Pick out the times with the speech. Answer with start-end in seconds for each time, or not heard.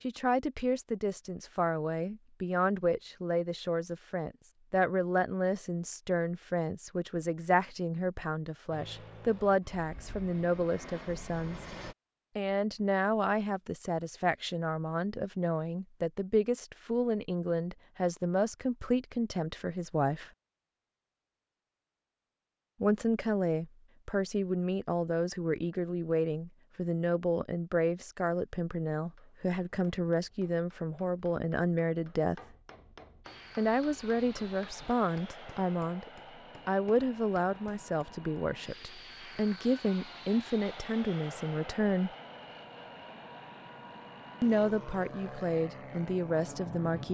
0.0-11.6, 12.3-20.3, 22.8-32.4, 33.5-42.1, 44.4-47.0.